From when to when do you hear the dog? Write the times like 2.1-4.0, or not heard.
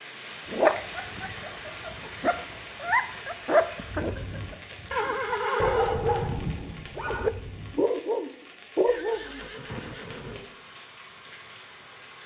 0.5-9.9.